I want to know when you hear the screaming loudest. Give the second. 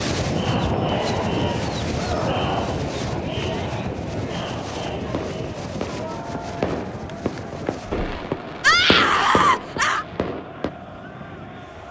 9 s.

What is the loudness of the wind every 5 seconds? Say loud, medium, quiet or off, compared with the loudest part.
loud, medium, quiet.